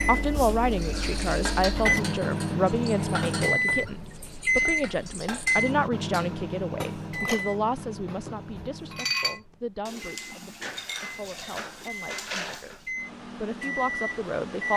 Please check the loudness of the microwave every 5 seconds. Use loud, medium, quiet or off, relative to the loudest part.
loud, medium, medium.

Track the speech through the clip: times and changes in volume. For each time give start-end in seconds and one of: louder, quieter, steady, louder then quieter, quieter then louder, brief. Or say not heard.
0.0-12.8 quieter
13.3-14.7 brief.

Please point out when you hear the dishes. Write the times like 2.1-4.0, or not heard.
0.8-12.8.